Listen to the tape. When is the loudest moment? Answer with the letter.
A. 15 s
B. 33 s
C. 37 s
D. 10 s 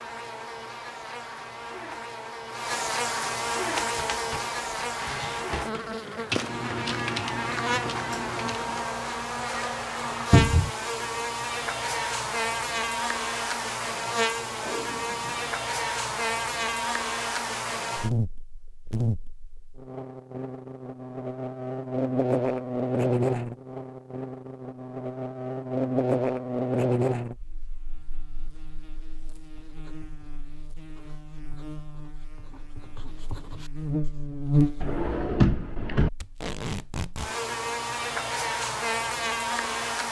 C.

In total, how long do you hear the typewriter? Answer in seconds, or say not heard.
5 s.